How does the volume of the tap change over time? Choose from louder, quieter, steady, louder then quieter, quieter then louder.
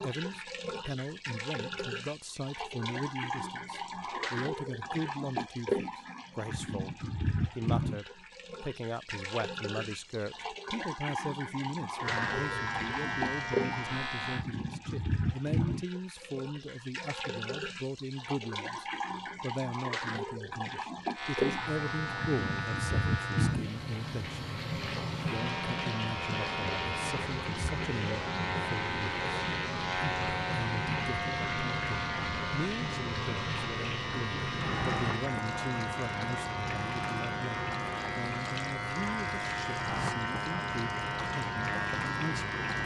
steady.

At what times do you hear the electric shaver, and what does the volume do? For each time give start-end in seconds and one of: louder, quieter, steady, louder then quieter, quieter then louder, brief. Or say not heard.
12.0-14.4 brief
21.1-42.8 steady.